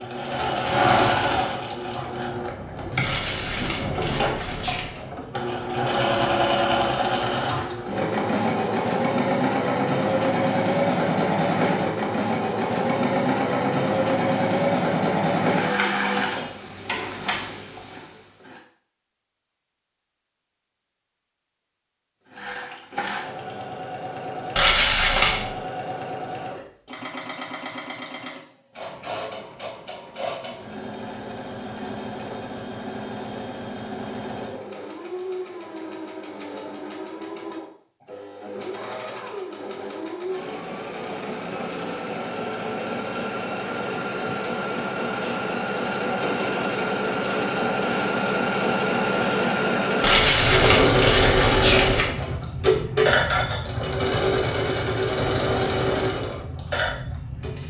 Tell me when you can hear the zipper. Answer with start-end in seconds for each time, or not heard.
not heard.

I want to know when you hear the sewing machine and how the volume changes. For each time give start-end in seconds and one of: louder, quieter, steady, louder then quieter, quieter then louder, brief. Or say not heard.
0.0-18.6 steady
22.2-57.6 louder.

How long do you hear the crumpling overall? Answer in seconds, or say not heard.
5 s.